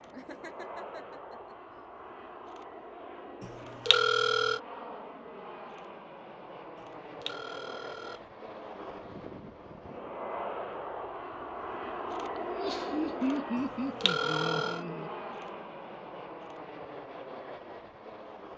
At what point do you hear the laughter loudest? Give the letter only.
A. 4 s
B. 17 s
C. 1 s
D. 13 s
D.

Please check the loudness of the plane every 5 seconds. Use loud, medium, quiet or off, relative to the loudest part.
medium, medium, loud, medium.